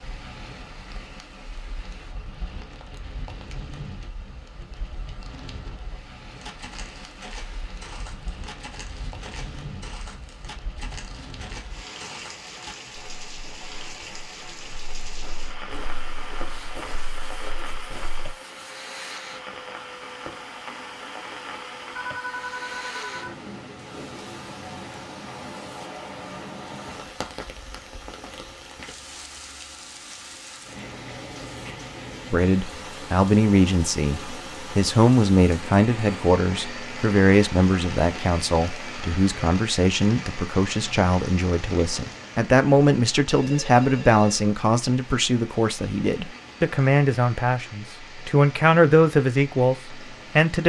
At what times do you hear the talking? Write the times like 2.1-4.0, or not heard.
32.3-50.6.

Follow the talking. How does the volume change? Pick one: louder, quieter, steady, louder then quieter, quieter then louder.
steady.